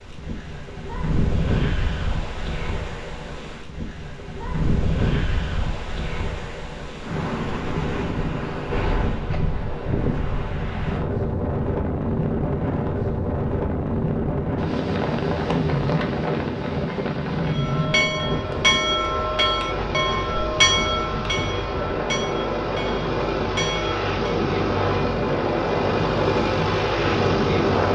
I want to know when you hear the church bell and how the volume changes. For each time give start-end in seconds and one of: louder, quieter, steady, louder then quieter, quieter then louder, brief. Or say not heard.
17.4-24.1 quieter.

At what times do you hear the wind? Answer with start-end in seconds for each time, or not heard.
0.0-27.9.